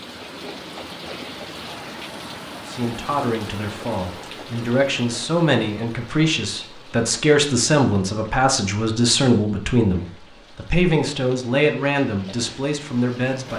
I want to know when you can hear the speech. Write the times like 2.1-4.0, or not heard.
2.6-13.5.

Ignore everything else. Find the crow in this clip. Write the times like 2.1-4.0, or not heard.
not heard.